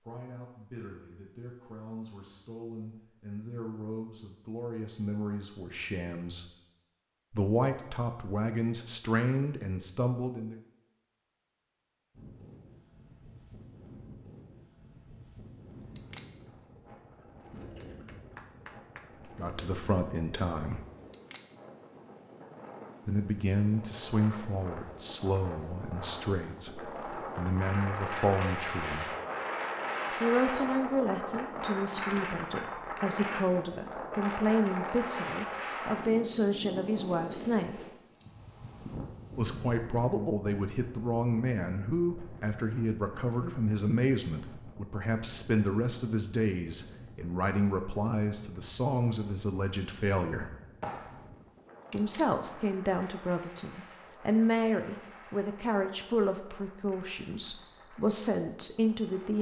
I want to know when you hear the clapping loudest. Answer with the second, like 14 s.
51 s.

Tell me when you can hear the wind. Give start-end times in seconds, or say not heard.
12.1-59.3.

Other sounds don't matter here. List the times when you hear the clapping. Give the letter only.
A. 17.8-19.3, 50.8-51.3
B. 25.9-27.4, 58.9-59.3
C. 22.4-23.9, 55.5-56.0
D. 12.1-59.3
A.